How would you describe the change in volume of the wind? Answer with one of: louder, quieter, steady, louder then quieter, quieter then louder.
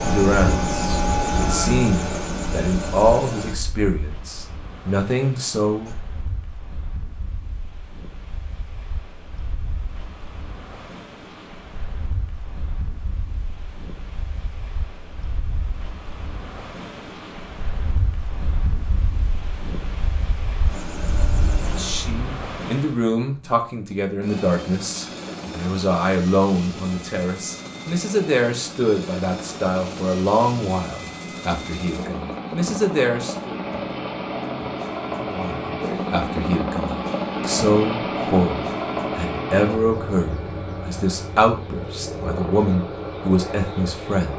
louder.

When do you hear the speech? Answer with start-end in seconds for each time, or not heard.
0.0-6.0, 21.6-33.5, 35.2-44.3.